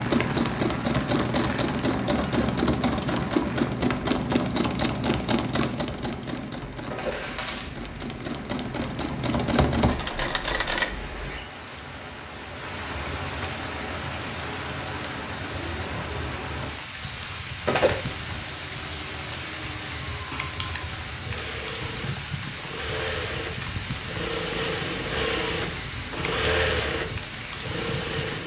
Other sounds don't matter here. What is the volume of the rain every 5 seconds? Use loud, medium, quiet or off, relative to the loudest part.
loud, medium, loud, loud, loud, loud.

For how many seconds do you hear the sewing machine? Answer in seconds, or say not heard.
21 s.